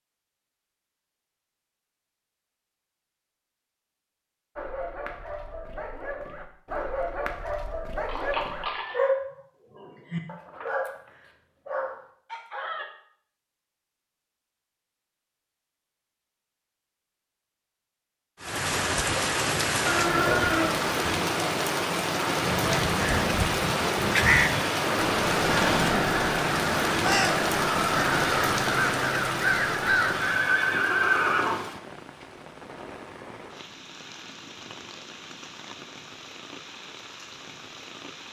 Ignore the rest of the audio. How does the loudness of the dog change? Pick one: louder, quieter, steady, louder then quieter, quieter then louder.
louder then quieter.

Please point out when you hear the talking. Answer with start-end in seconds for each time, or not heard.
not heard.